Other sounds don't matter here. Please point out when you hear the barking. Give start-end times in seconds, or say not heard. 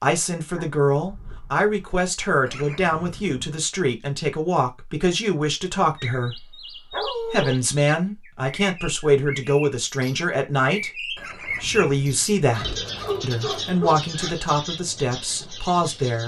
0.5-1.9, 6.9-7.5, 12.5-14.4.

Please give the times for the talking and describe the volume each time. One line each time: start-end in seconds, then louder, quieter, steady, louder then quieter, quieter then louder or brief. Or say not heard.
0.0-16.2 steady.